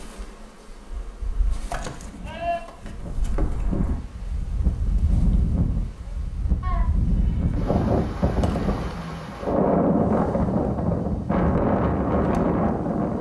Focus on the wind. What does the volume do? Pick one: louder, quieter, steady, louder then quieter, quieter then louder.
louder.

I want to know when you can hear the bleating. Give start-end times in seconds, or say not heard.
1.3-2.6, 6.6-7.8.